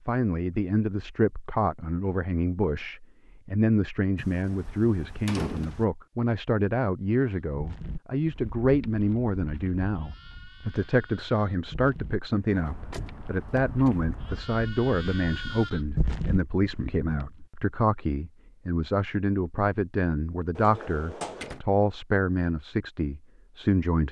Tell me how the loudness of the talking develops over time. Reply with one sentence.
The volume of the talking stays about the same.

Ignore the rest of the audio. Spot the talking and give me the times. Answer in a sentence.
You can hear the talking from 0.1 to 24.0 s.